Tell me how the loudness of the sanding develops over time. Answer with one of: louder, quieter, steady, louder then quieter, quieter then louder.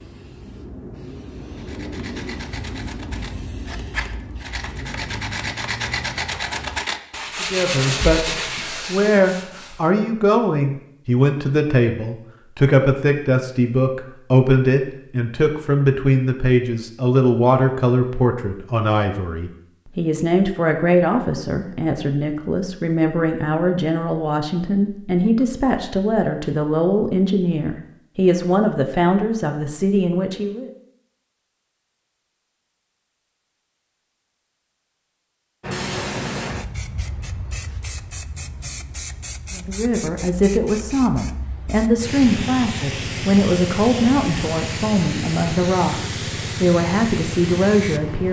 louder.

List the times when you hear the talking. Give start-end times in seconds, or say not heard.
7.4-30.7, 39.5-48.2.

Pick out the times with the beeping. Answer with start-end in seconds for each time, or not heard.
not heard.